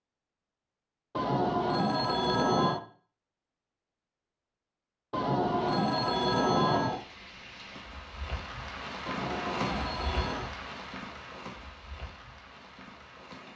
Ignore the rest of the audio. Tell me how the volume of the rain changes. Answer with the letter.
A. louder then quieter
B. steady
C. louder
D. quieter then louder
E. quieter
A.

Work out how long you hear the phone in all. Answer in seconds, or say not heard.
5 s.